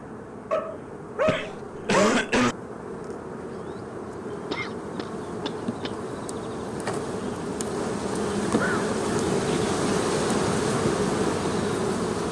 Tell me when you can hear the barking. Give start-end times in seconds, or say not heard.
0.5-2.2.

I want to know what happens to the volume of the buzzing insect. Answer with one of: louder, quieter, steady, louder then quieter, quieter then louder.
louder.